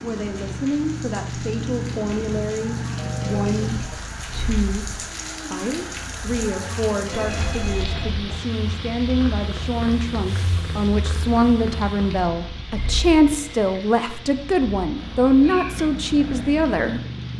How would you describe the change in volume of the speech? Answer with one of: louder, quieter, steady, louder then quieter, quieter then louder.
louder.